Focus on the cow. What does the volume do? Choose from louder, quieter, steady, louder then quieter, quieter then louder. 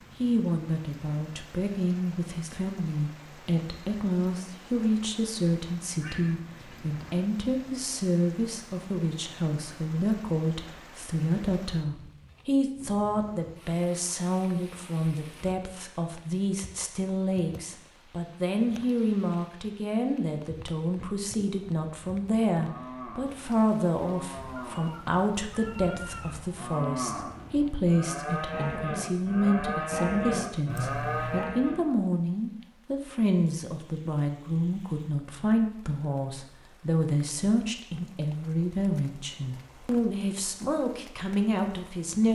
louder.